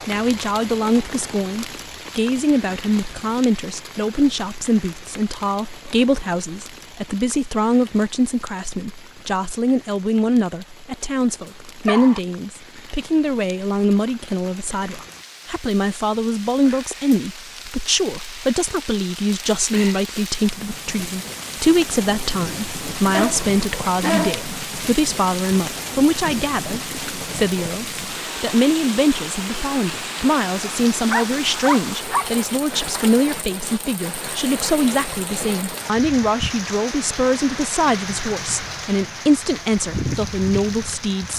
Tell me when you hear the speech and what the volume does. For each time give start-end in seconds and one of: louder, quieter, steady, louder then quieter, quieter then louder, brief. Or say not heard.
0.1-41.3 steady.